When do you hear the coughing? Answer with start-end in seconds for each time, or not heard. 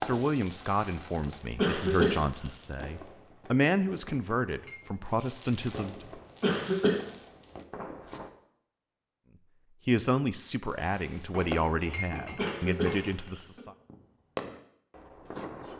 1.6-2.2, 6.4-7.0, 12.3-13.6.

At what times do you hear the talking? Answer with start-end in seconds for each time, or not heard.
0.0-6.2, 9.8-13.7.